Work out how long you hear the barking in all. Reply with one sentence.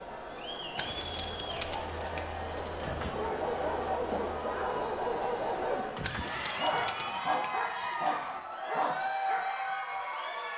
The barking can be heard for 7 seconds in total.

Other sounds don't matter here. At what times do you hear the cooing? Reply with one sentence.
The cooing can be heard from 0.8 to 2.9 s and from 6.0 to 8.6 s.